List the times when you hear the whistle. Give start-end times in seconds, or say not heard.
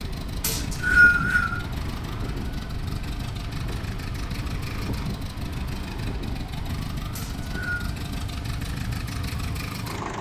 0.4-1.6, 7.2-7.8.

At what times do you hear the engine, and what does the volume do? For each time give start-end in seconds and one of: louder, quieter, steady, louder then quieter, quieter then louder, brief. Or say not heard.
0.0-10.1 steady.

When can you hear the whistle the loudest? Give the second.
1 s.